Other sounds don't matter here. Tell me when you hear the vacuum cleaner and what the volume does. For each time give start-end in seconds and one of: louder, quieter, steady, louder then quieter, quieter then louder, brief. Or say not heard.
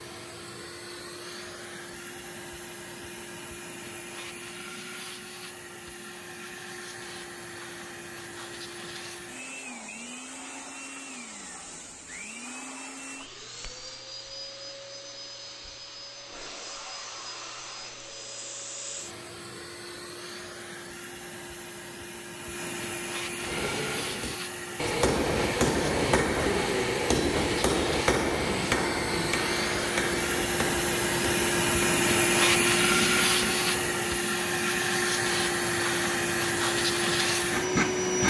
0.0-38.2 louder.